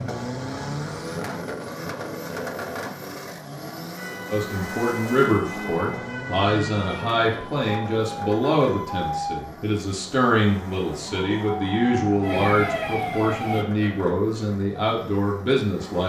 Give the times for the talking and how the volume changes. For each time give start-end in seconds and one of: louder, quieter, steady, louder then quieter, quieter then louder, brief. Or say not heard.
4.3-16.0 steady.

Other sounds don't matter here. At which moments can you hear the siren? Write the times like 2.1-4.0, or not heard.
4.0-9.4, 11.1-13.7.